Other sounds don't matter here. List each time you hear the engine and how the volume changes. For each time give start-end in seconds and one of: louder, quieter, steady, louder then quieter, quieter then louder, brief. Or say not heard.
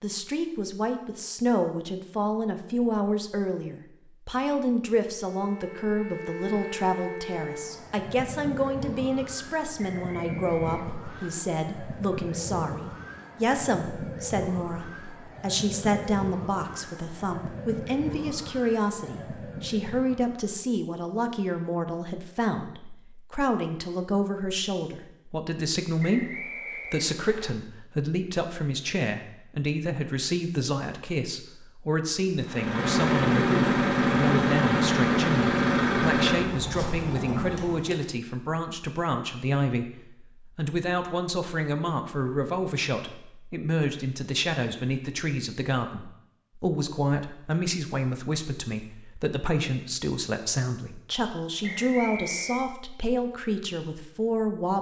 32.4-38.0 quieter.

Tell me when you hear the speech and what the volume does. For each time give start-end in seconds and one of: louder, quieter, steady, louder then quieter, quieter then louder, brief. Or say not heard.
0.0-26.3 steady
26.9-54.7 steady.